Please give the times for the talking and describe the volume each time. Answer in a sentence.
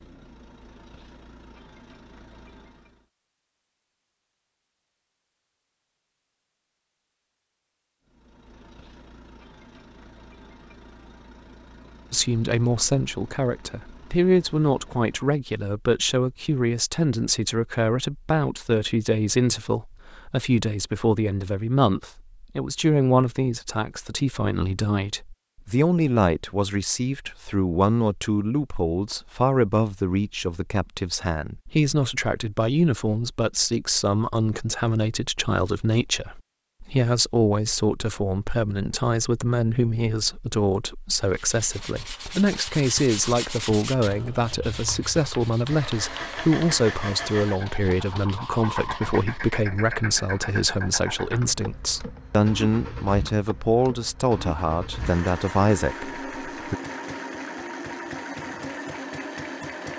The talking can be heard from 12.1 to 56.8 s, at a steady volume.